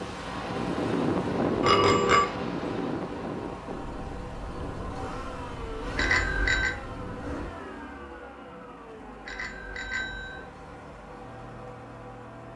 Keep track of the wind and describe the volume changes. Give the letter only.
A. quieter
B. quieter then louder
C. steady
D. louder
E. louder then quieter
A.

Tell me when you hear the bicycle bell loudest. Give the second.
2 s.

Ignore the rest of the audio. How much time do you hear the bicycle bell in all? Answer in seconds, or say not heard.
3 s.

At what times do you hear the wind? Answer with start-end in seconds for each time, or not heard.
0.0-7.5.